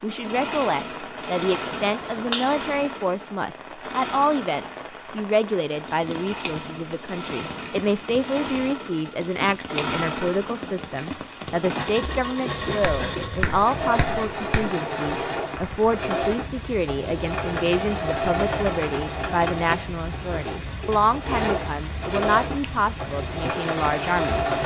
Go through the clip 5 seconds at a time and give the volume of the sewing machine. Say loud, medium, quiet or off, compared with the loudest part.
medium, medium, loud, loud, loud.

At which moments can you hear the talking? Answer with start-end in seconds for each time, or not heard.
0.0-24.4.